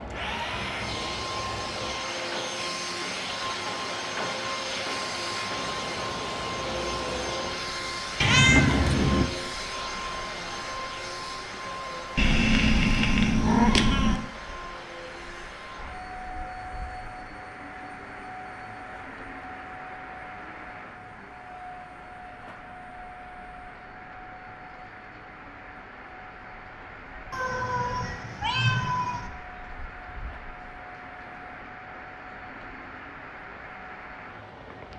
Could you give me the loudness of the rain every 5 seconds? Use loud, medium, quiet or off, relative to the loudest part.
loud, loud, medium, medium, medium, medium, medium.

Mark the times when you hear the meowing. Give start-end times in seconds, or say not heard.
8.2-9.3, 12.2-14.2, 27.3-29.3.